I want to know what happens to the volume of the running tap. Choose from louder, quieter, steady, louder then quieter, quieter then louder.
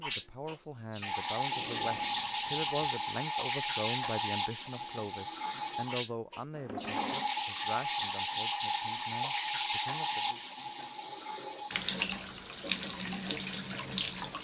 steady.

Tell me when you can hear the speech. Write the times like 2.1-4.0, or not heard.
0.0-10.4.